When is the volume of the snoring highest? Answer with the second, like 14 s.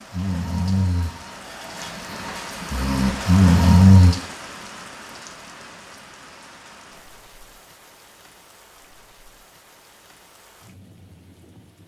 4 s.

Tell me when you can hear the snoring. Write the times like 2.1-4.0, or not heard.
0.0-4.2.